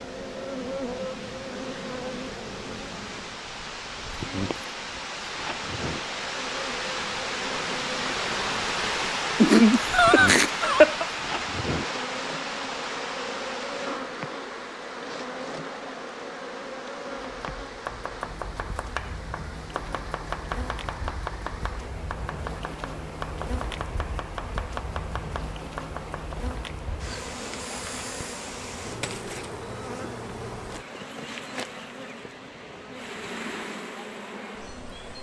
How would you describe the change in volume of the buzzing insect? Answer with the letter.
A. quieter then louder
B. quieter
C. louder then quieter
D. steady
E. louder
D.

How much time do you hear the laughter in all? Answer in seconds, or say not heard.
2 s.